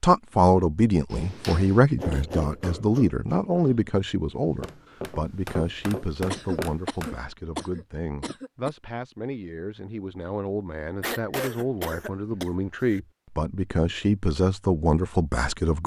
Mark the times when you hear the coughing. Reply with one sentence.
The coughing can be heard from 2.0 to 2.5 s, from 6.3 to 8.7 s and from 11.0 to 13.0 s.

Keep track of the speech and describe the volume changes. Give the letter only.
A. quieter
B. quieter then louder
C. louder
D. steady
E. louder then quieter
B.